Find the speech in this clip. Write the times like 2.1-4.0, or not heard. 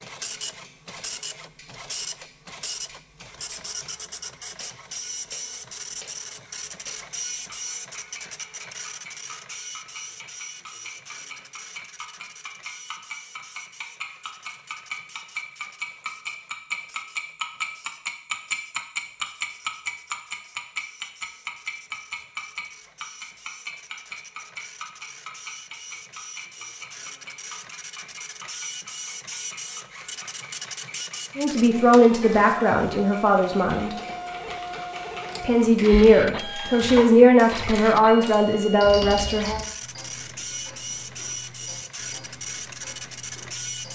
31.4-34.0, 35.4-39.6.